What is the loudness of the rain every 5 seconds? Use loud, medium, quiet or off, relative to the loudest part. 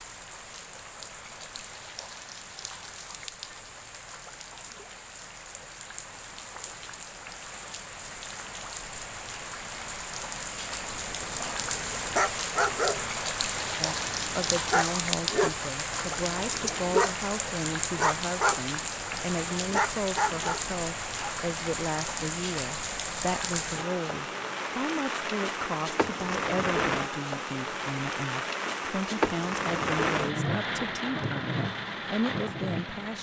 quiet, medium, loud, loud, loud, loud, loud.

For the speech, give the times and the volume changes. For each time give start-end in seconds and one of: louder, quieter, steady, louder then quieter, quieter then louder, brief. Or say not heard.
13.8-33.1 steady.